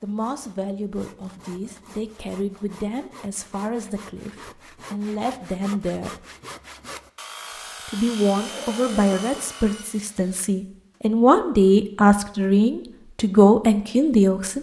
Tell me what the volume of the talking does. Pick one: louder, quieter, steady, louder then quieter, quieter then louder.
louder.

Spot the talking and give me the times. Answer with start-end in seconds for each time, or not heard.
0.0-6.2, 7.8-14.5.